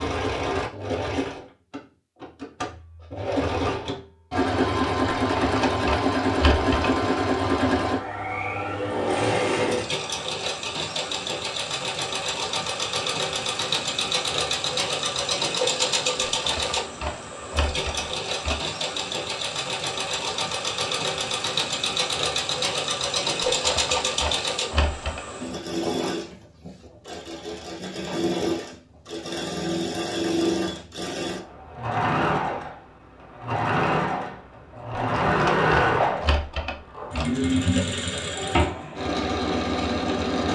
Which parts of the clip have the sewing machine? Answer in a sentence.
The sewing machine can be heard from 0.0 to 40.5 s.